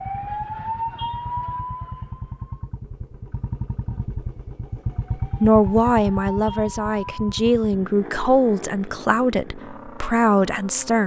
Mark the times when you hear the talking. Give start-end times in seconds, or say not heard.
5.4-11.0.